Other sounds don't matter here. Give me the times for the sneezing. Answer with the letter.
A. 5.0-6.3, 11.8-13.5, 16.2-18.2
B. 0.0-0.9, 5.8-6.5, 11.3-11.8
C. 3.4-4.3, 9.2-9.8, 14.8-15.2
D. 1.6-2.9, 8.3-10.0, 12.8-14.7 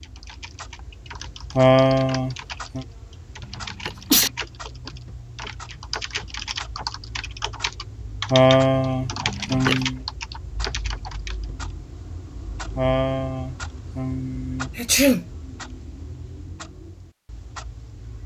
C.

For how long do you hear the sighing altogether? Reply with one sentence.
The sighing can be heard for 5 seconds in total.